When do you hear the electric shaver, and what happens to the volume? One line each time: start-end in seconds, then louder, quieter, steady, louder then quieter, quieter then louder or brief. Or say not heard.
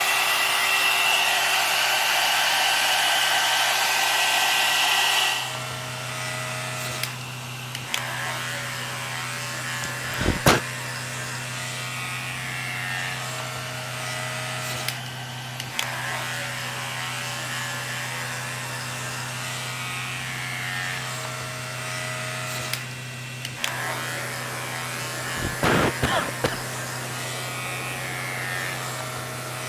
0.0-29.6 louder.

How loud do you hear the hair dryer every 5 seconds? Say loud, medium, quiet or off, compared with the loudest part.
loud, medium, quiet, quiet, quiet, quiet.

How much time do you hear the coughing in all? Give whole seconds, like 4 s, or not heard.
2 s.